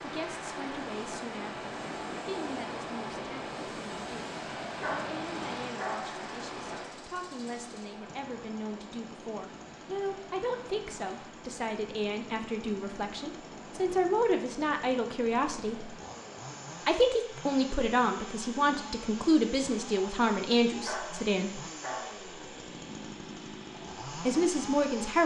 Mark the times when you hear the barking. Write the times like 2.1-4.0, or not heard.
4.7-6.2, 20.7-22.3.